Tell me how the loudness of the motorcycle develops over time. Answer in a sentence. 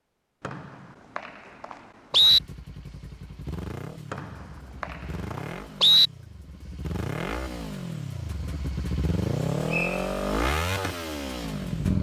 The loudness of the motorcycle goes up.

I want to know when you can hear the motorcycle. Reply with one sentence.
You can hear the motorcycle from 2.1 to 11.9 s.